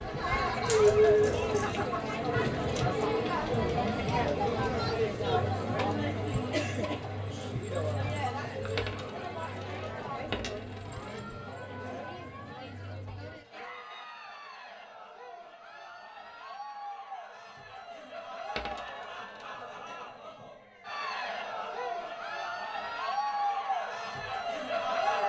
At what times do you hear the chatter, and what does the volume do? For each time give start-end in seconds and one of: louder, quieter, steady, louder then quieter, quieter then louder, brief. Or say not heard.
0.0-25.2 quieter then louder.